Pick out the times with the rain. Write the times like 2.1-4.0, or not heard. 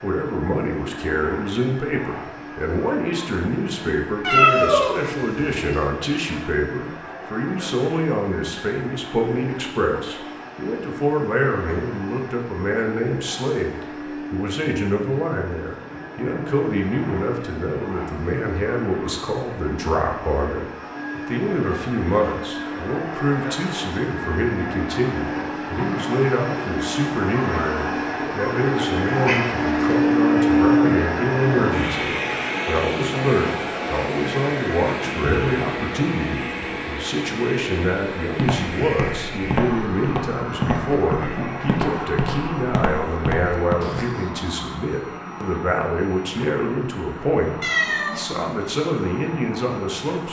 not heard.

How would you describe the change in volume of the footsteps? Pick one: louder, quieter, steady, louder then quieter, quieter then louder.
steady.